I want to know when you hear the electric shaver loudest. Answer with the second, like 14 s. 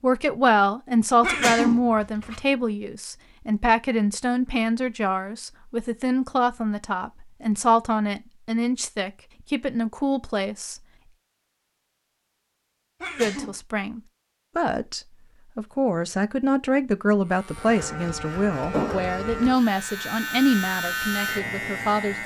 21 s.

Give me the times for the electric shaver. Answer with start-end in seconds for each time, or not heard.
17.2-22.2.